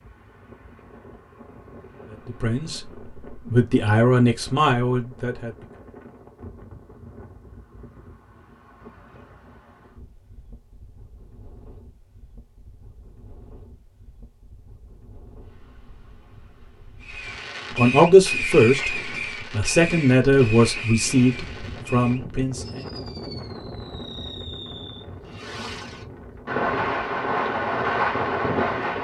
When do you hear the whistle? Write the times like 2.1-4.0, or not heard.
not heard.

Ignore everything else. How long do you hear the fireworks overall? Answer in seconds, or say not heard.
12 s.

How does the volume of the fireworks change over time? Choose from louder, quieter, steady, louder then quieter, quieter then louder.
quieter then louder.